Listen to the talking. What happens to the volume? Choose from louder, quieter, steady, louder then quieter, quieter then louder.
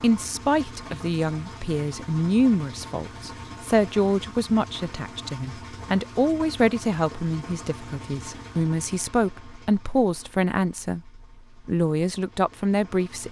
steady.